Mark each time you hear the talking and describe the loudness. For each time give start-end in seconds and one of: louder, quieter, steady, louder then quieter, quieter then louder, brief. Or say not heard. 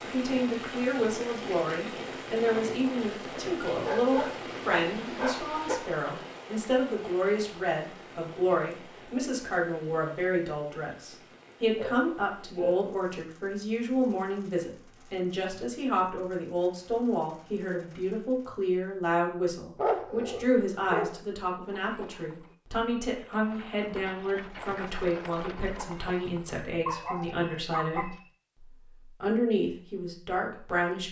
0.0-31.0 steady.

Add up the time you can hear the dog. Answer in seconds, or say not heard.
6 s.